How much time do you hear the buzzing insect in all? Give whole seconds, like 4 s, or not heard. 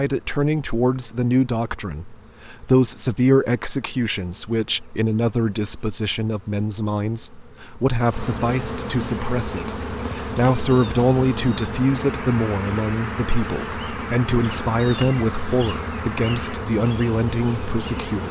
18 s.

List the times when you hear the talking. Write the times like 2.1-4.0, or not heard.
0.0-18.2.